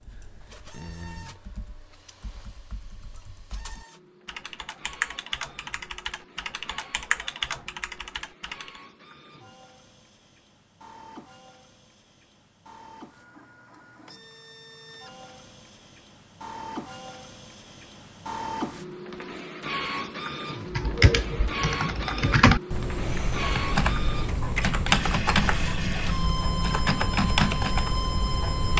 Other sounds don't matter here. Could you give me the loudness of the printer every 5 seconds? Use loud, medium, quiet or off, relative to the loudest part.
quiet, quiet, quiet, loud, loud, loud.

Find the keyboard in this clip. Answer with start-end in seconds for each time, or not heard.
0.0-8.8, 20.7-28.7.